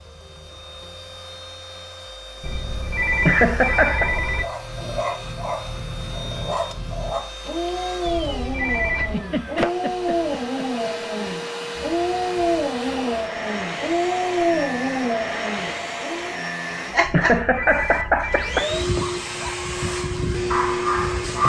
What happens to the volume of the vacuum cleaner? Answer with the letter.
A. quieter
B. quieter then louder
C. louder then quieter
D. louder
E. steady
D.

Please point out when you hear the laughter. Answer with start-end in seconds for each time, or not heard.
3.2-4.1, 8.9-10.9, 17.1-18.7.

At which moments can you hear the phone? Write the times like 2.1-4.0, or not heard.
2.4-4.5, 8.1-9.2, 17.1-18.6.